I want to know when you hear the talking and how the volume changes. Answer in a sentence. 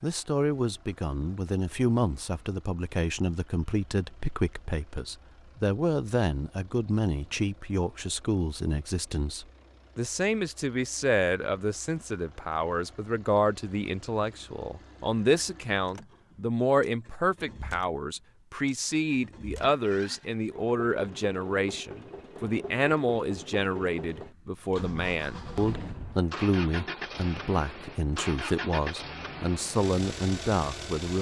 You can hear the talking from 0.0 to 31.1 s, at a steady volume.